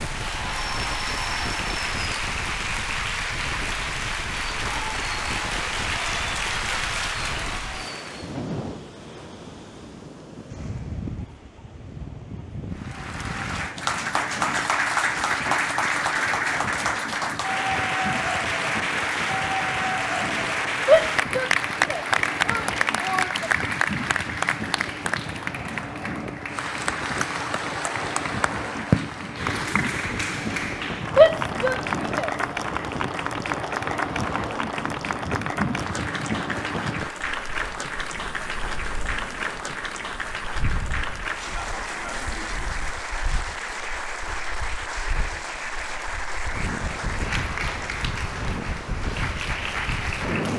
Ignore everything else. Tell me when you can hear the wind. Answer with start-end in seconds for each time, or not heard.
0.0-50.5.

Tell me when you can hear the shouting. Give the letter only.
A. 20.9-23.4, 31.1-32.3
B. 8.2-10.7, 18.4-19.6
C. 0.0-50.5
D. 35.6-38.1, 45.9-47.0
A.